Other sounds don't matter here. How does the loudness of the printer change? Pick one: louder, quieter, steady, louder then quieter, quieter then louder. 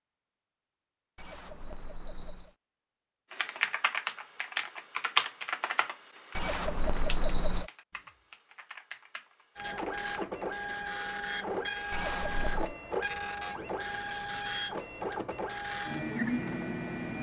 steady.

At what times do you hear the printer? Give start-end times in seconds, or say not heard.
9.6-17.1.